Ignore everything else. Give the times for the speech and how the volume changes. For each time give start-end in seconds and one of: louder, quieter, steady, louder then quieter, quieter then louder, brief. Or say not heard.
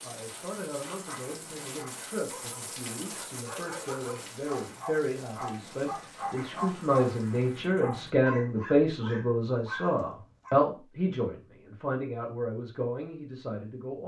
0.0-14.0 louder then quieter.